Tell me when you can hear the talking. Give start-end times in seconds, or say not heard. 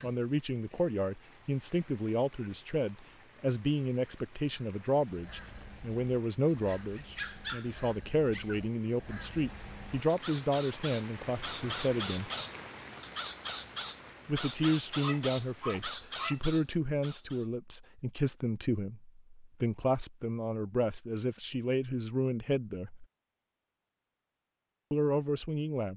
0.0-12.3, 14.2-23.1, 24.9-25.9.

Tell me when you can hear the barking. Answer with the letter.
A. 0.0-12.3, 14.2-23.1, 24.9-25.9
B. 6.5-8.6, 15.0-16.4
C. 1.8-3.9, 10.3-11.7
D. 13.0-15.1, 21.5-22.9
B.